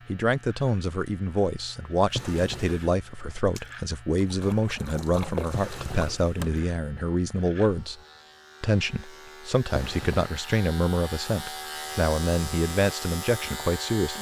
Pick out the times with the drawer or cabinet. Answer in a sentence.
You can hear the drawer or cabinet from 2.0 to 2.9 s, from 5.5 to 6.7 s and from 9.7 to 10.3 s.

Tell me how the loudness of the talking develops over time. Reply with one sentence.
The loudness of the talking stays about the same.